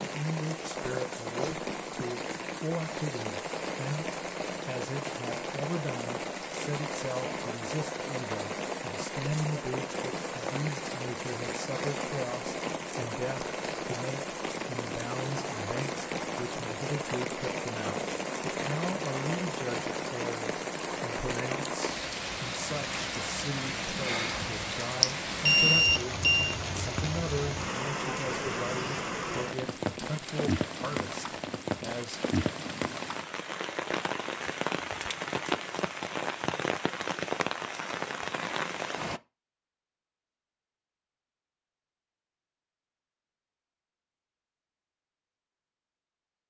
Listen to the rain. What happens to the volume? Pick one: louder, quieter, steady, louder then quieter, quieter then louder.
steady.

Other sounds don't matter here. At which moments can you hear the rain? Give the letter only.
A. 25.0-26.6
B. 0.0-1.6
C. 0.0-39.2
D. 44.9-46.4
C.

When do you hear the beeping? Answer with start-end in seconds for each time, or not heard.
25.0-26.6.